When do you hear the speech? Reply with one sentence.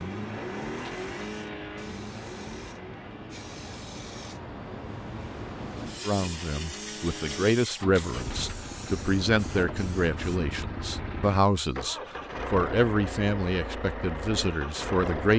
The speech can be heard from 6.0 to 15.3 s.